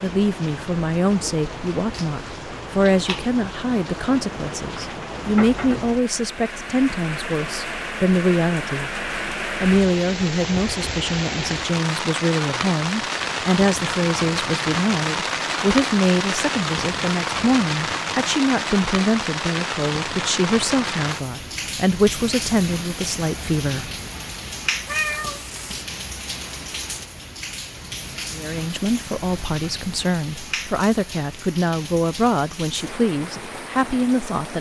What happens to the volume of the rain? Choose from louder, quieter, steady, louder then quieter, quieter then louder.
louder then quieter.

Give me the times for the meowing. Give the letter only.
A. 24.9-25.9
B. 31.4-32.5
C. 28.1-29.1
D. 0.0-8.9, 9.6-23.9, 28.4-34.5
A.